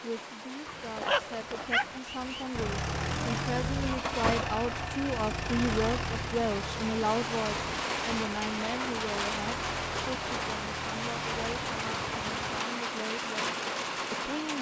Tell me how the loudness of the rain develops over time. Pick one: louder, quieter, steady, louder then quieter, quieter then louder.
louder.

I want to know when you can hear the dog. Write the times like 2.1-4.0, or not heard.
0.7-2.5.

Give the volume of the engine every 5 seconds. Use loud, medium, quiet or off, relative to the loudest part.
loud, medium, medium.